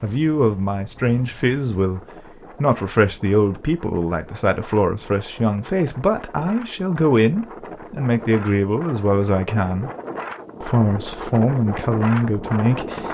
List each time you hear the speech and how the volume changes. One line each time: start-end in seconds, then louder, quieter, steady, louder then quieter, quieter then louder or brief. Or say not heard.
0.0-9.9 steady
10.6-13.0 brief.